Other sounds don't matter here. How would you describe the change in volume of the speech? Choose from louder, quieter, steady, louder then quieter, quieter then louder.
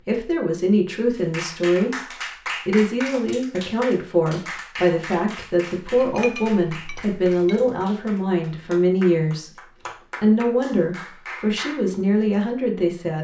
steady.